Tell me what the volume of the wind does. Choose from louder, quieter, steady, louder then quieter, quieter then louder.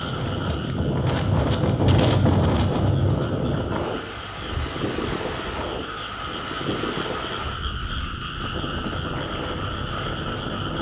quieter.